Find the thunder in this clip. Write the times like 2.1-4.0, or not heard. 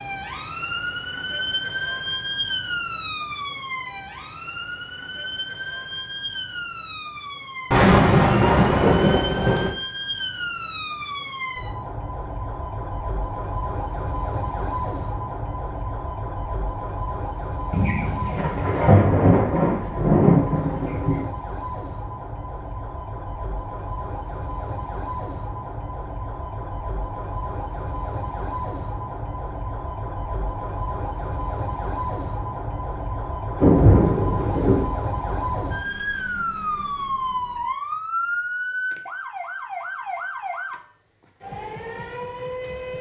7.7-9.7, 17.7-21.2, 33.5-34.9.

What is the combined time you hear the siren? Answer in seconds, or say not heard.
43 s.